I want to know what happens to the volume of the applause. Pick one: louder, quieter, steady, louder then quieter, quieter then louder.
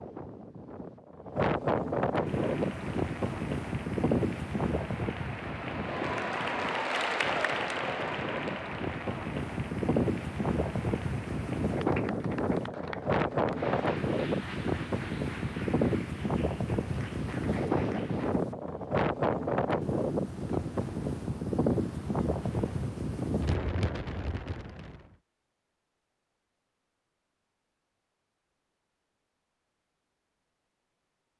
louder then quieter.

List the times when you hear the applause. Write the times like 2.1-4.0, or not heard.
2.1-18.4.